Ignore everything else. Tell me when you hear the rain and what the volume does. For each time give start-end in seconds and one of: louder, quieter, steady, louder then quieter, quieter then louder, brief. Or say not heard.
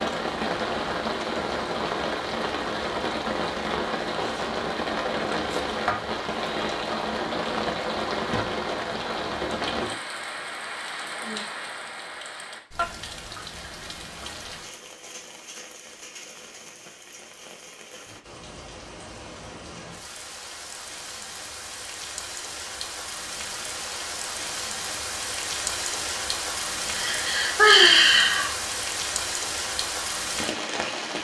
0.0-31.1 quieter then louder.